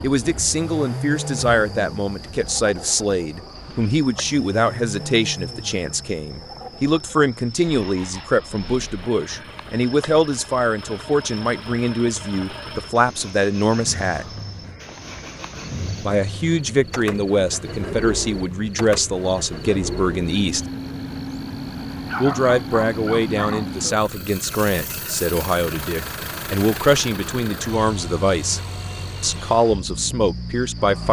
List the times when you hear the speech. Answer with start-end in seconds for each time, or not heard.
0.0-14.2, 16.0-20.6, 22.2-28.6, 29.2-31.0.